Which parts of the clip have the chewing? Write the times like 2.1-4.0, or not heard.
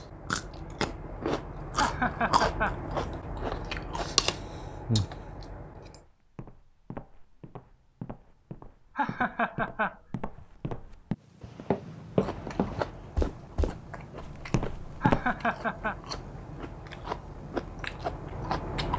0.0-6.0, 12.1-18.9.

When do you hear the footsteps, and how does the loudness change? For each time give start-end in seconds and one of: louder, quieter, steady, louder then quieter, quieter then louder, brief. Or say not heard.
6.0-15.3 louder then quieter.